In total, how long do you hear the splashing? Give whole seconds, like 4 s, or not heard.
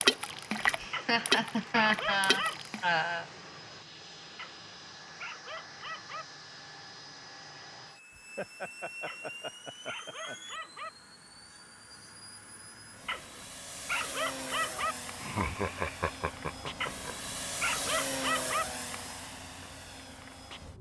3 s.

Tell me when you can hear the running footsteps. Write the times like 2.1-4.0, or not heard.
not heard.